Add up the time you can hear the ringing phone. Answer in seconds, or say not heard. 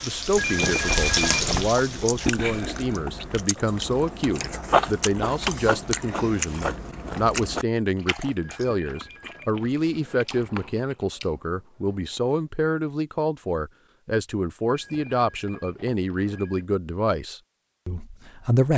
5 s.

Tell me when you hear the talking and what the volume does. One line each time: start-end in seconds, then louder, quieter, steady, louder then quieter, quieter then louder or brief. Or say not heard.
0.0-18.7 steady.